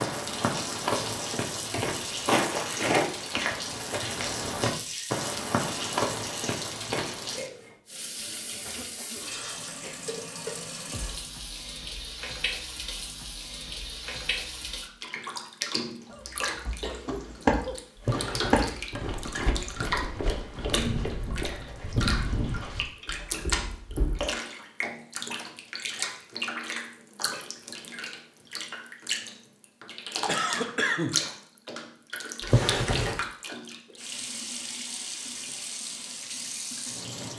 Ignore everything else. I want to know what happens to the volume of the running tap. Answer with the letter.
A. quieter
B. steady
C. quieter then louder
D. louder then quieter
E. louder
B.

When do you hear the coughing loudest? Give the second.
31 s.